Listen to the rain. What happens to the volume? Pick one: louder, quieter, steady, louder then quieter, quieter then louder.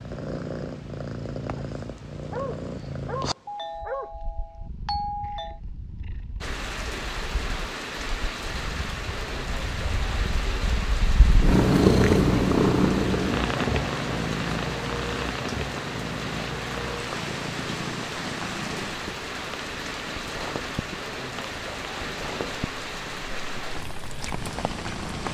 steady.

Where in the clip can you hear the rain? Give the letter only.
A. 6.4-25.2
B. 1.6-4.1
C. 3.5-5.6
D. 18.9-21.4
A.